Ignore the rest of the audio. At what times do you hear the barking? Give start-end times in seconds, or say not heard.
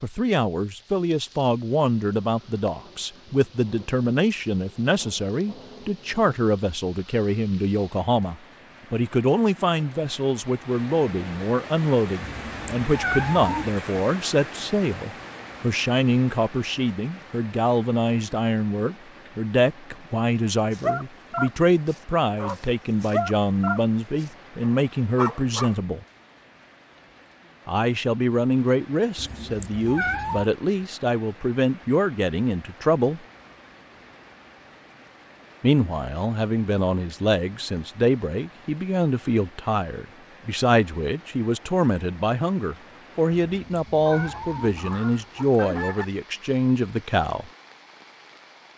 20.7-25.8.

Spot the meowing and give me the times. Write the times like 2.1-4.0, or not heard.
12.2-13.8, 29.1-30.4, 43.3-44.8.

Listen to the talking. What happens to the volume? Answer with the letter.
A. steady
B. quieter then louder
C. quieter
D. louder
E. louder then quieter
A.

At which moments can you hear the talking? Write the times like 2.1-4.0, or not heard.
0.0-26.1, 27.6-33.2, 35.6-47.5.